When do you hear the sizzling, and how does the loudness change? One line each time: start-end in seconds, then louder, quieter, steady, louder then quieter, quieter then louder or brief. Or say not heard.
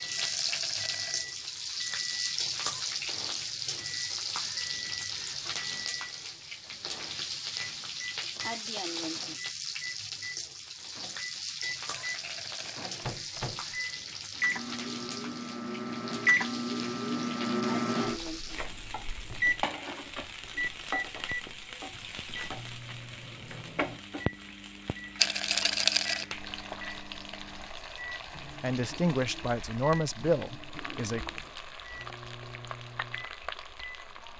0.0-34.3 quieter.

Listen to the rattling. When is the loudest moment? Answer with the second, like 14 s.
26 s.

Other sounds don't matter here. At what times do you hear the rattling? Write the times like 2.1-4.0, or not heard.
0.1-1.2, 11.9-12.9, 25.1-26.2.